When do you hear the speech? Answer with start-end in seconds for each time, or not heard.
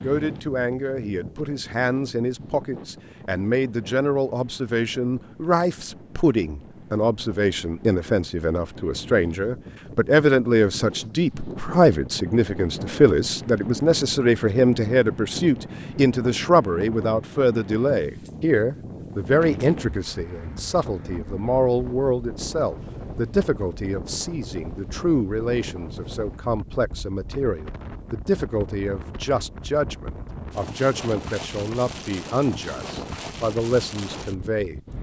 0.0-34.8.